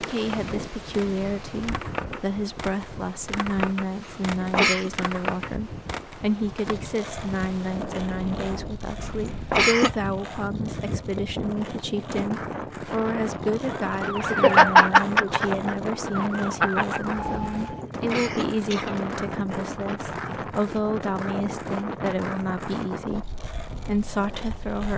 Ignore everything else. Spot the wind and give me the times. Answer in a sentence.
You can hear the wind from 0.0 to 24.9 s.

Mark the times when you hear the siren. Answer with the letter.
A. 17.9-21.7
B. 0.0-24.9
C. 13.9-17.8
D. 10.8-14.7
C.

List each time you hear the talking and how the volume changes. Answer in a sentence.
You can hear the talking from 0.0 to 24.9 s, at a steady volume.